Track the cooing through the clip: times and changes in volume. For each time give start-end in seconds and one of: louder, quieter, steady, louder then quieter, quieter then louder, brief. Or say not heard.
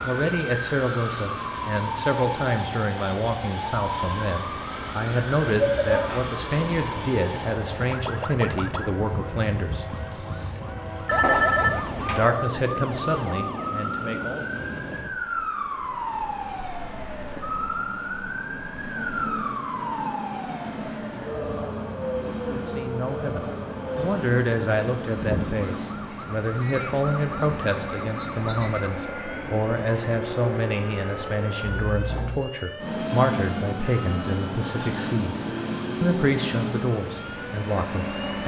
not heard.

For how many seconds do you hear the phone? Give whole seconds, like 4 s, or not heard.
2 s.